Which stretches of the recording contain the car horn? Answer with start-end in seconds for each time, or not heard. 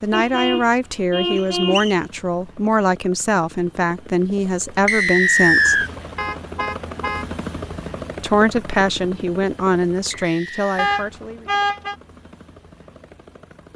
0.1-1.9, 6.2-7.3, 10.8-11.9.